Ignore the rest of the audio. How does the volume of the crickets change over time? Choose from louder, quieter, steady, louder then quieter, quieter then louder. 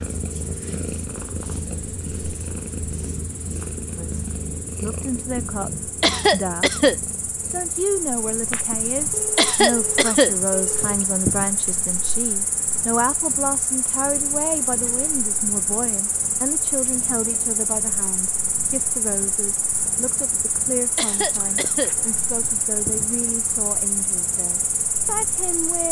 louder.